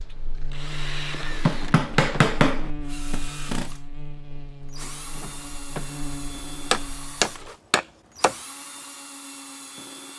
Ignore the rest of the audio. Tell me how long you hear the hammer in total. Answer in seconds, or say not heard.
3 s.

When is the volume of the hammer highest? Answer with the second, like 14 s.
2 s.